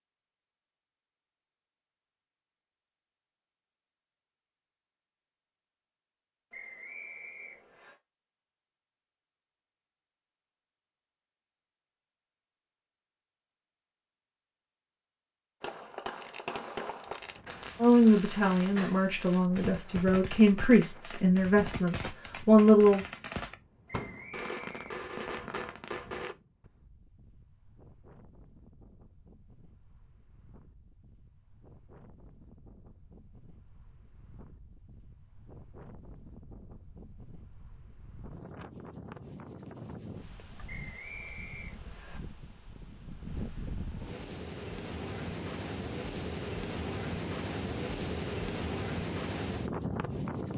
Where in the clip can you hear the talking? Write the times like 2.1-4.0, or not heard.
17.8-23.1.